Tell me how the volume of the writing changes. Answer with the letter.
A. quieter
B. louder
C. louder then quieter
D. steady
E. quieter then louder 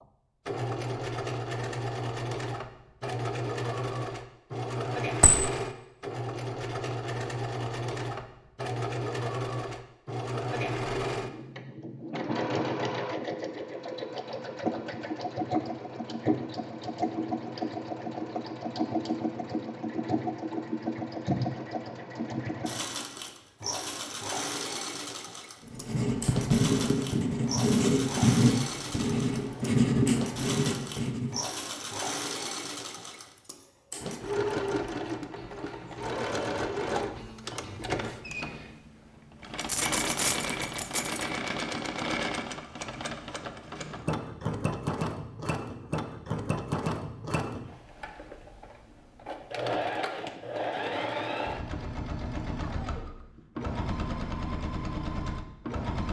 D.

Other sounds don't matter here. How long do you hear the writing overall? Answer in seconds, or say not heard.
6 s.